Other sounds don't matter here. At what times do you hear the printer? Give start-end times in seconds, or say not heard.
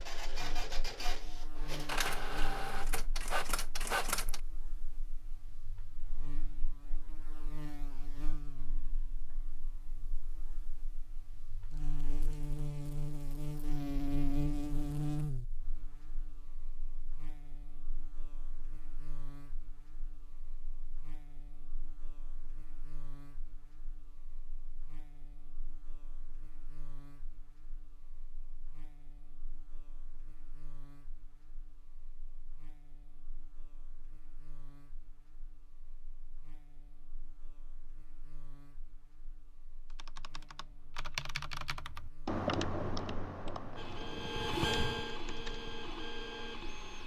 0.0-4.4, 43.8-47.0.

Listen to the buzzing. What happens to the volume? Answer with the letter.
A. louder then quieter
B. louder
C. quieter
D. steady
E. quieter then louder
A.